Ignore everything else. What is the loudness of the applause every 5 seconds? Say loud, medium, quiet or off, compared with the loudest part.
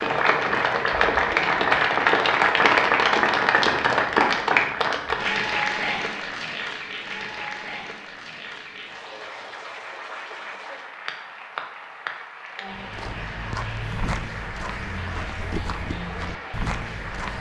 loud, medium, quiet, quiet.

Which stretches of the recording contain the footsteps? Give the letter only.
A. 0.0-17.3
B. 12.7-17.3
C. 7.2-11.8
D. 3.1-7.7
B.